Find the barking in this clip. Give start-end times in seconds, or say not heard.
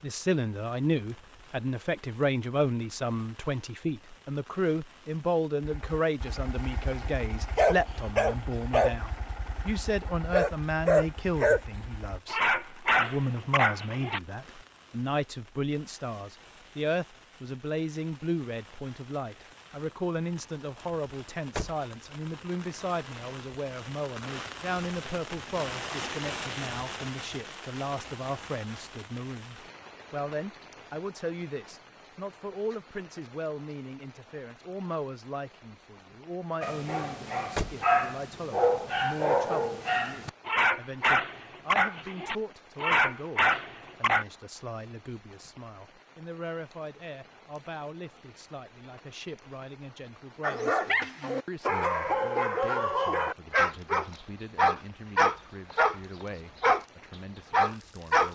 5.6-14.2, 36.6-44.2, 50.4-56.9, 57.5-58.3.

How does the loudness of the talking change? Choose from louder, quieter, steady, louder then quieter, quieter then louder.
quieter.